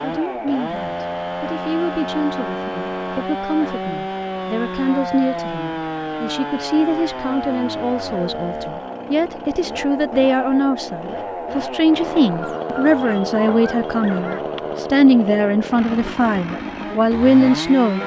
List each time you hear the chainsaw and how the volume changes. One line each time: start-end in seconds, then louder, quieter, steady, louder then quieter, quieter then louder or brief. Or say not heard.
0.0-18.0 steady.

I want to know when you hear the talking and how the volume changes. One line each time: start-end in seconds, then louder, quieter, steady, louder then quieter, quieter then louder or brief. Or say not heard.
0.0-18.0 louder.